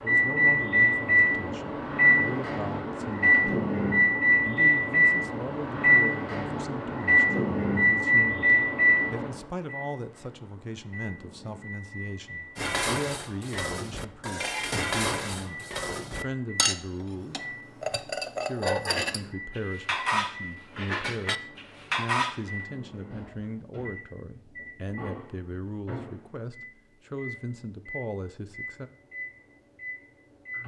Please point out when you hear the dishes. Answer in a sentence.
You can hear the dishes from 12.6 to 22.4 s.